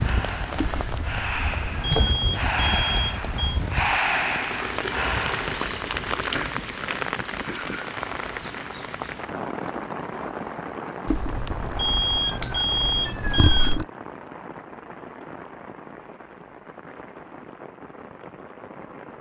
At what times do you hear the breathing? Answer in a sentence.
The breathing can be heard from 0.0 to 5.7 s.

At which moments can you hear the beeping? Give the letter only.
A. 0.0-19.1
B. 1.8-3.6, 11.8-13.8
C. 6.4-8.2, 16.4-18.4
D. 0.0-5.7
B.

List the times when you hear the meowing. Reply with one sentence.
You can hear the meowing from 0.6 to 2.2 s and from 11.1 to 13.8 s.